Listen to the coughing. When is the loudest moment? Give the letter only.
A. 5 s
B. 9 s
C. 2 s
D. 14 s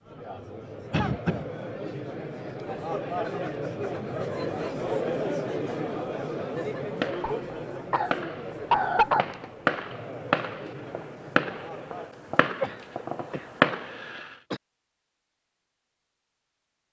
B.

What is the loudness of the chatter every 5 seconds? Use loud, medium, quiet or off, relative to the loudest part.
loud, loud, medium, off.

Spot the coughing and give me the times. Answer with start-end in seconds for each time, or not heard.
0.9-1.5, 7.2-9.2, 12.6-14.6.